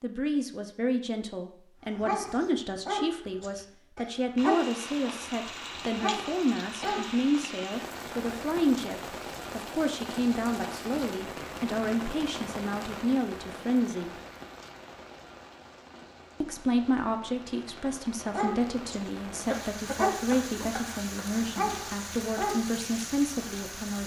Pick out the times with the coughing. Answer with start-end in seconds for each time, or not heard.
6.8-7.5, 19.4-21.3.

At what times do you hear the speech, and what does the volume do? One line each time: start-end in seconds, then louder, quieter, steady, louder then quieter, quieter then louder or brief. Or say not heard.
0.0-14.1 steady
16.4-24.0 steady.